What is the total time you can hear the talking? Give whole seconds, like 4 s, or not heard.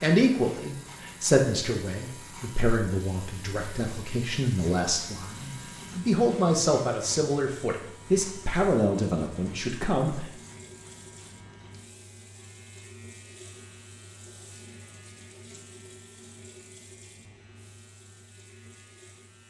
10 s.